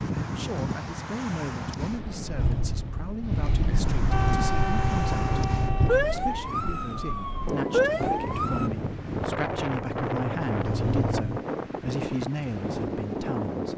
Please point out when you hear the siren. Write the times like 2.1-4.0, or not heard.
4.1-8.7.